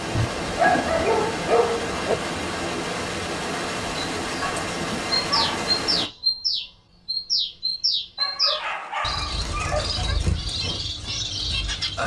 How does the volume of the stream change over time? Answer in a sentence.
The volume of the stream stays about the same.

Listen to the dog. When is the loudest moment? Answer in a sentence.
The volume of the dog peaks at 1 second.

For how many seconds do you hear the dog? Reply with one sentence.
The dog can be heard for 5 seconds in total.